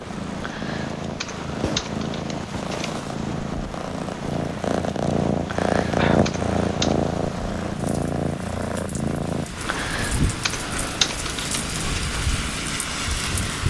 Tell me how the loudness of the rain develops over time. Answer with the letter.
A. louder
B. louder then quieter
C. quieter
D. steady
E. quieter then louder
A.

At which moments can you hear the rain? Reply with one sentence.
You can hear the rain from 0.0 to 13.6 s.